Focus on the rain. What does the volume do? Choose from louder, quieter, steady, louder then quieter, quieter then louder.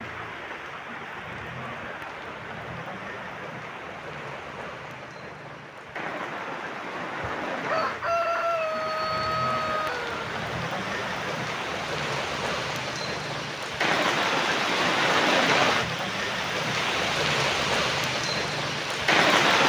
louder.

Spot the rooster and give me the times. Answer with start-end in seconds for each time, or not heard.
7.2-10.2.